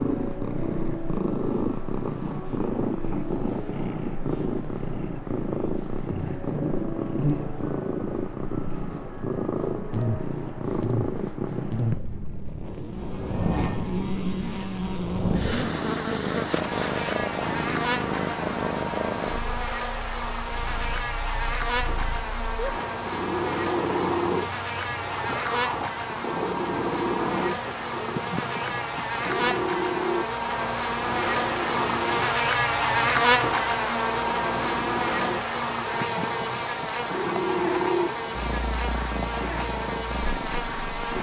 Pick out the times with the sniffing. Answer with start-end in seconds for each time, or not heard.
15.3-17.1.